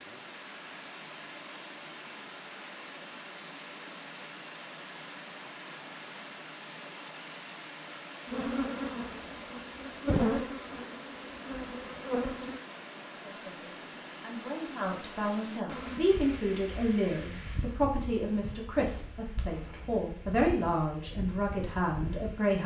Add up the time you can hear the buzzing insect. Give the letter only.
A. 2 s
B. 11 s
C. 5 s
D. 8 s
B.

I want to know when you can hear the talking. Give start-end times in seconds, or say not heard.
13.2-22.6.